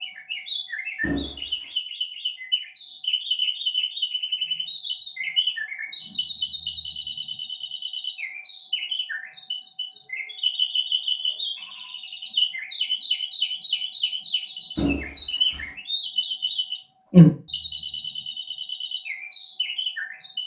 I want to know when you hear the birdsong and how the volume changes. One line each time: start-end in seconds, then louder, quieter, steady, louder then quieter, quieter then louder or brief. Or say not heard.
0.0-20.4 louder.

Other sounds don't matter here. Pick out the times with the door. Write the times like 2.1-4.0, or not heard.
1.0-1.6, 14.8-15.8.